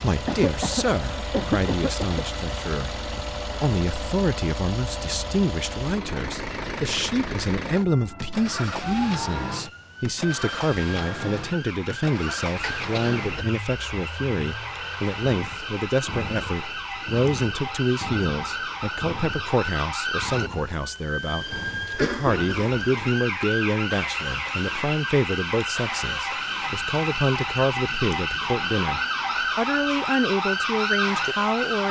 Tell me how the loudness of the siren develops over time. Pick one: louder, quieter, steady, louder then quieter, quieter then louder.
louder.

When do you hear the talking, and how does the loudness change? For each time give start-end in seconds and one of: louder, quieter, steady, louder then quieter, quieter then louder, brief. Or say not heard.
0.0-31.8 steady.